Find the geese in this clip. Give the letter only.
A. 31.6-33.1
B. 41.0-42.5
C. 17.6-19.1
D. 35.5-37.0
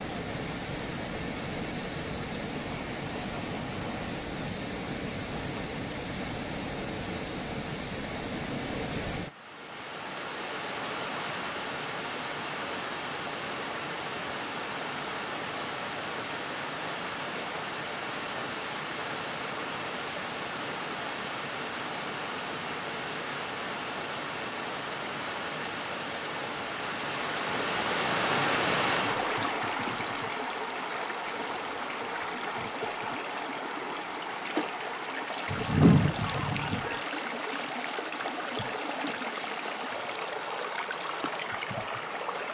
D.